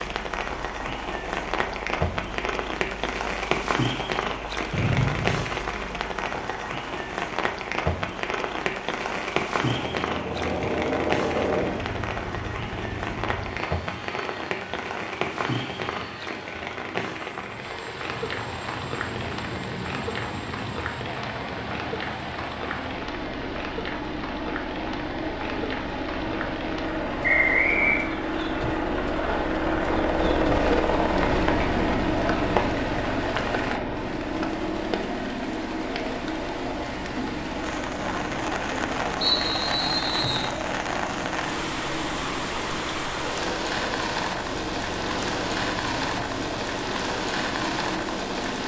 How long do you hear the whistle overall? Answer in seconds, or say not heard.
3 s.